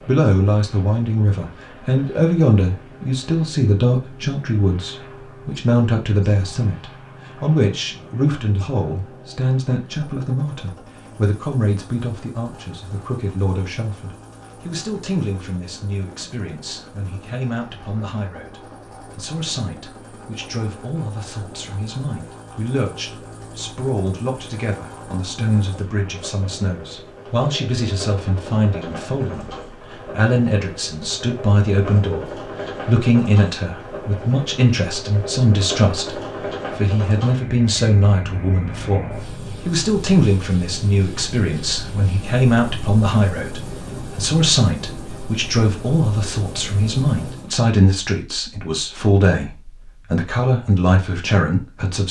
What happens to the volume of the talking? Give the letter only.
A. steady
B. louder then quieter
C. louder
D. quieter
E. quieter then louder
E.